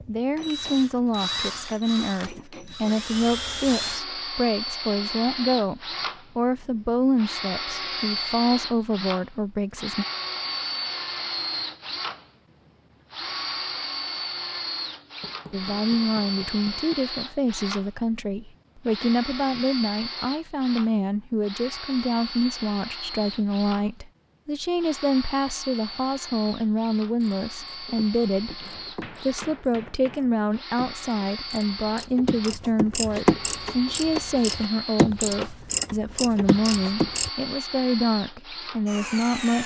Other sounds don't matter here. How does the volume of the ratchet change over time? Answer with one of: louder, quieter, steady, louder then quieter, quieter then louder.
louder.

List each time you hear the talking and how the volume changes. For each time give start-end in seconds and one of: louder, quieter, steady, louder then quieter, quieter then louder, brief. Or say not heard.
0.1-10.1 steady
15.5-39.6 steady.